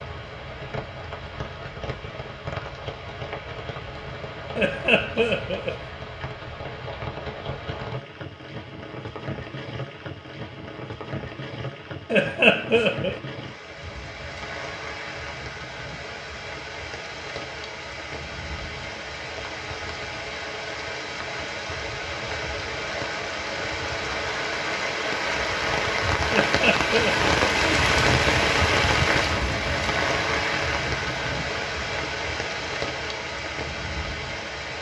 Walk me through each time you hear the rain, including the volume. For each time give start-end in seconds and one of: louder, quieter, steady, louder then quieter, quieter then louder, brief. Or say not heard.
0.0-34.7 louder.